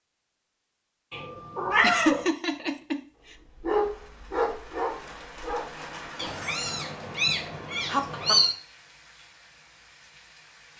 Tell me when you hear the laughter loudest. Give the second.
2 s.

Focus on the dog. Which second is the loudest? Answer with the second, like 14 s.
4 s.